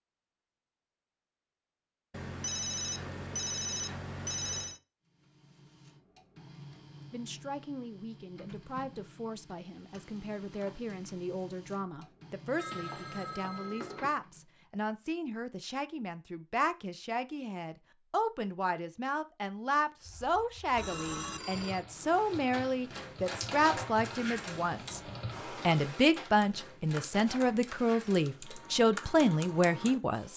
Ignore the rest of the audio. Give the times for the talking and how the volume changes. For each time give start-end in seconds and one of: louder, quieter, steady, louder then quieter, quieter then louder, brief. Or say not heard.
7.1-30.3 louder.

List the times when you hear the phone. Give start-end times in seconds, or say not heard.
2.1-4.8, 12.6-14.2, 20.8-21.9.